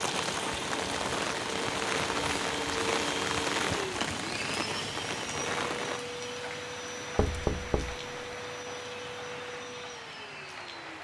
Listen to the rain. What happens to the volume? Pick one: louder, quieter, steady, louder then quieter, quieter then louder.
quieter.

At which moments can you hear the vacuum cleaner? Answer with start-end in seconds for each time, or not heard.
0.0-11.0.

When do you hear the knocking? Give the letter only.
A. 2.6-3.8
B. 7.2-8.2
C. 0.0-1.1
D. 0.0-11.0
B.